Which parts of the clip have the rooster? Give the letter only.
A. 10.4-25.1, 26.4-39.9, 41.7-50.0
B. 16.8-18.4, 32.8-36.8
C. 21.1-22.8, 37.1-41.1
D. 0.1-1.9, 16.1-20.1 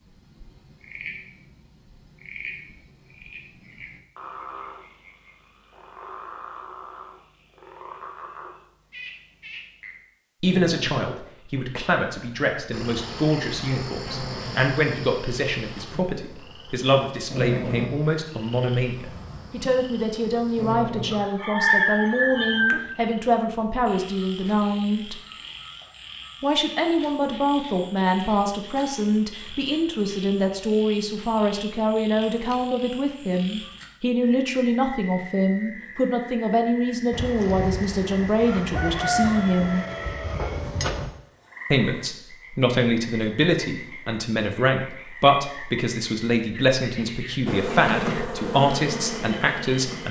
C.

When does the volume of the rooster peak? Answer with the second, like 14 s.
22 s.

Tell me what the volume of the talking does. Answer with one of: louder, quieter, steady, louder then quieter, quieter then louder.
steady.